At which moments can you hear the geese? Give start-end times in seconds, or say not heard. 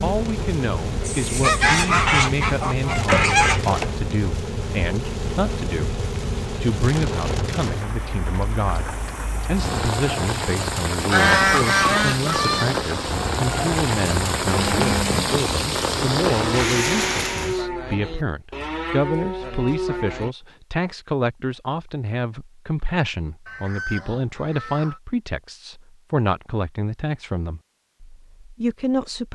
1.1-3.9, 11.1-12.8, 23.4-25.0.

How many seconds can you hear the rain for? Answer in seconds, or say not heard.
18 s.